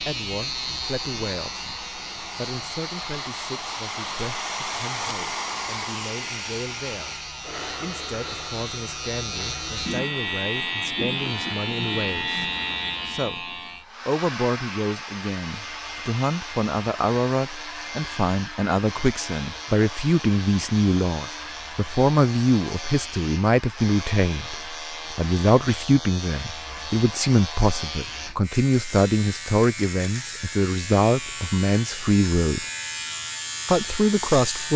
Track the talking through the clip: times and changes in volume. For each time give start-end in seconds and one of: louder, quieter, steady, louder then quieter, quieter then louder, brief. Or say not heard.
0.0-32.6 louder
33.6-34.7 brief.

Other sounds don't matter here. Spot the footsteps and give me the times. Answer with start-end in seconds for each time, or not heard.
not heard.